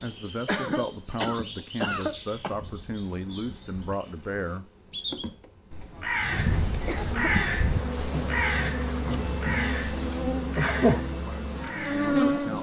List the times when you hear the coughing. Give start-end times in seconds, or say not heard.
0.5-2.5, 6.8-7.3.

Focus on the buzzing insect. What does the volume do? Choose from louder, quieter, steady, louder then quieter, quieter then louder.
quieter then louder.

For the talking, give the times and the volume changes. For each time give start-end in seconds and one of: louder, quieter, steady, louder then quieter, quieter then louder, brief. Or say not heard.
0.0-4.7 steady
10.8-12.5 brief.